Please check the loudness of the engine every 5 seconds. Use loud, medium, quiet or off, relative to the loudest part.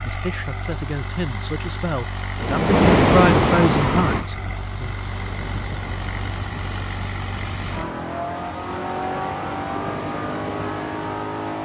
medium, loud, loud.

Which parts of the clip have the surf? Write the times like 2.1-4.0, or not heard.
2.4-11.3.